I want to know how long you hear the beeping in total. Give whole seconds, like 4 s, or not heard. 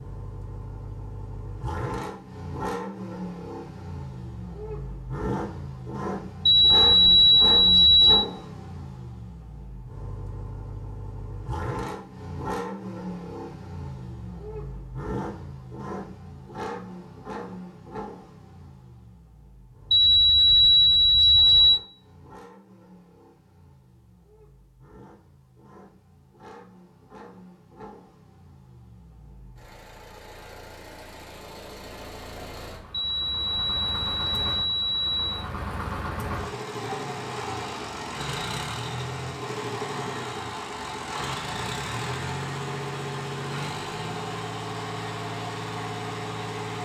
6 s.